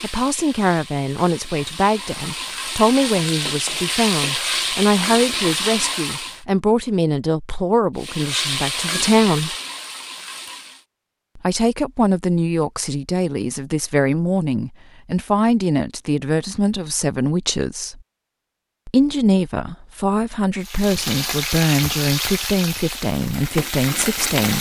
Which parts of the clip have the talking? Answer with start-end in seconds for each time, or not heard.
0.0-9.6, 11.3-18.0, 18.9-24.5.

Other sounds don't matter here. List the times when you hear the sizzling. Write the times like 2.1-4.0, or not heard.
0.0-6.4, 8.0-10.8, 20.6-24.5.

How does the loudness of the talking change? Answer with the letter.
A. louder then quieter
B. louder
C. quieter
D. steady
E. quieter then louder
D.